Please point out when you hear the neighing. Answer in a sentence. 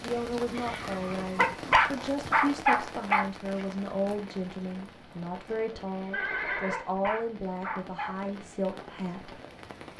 You can hear the neighing from 0.5 to 2.2 s and from 6.1 to 6.9 s.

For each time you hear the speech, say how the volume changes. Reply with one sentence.
The speech can be heard from 0.0 to 9.4 s, at a steady volume.